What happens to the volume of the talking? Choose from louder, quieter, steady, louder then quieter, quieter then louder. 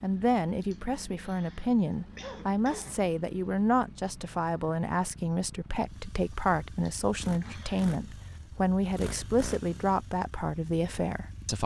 steady.